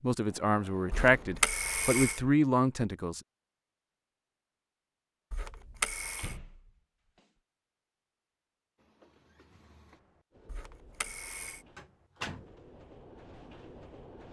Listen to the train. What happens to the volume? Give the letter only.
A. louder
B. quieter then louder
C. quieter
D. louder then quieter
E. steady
A.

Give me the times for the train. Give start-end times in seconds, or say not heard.
8.8-14.2.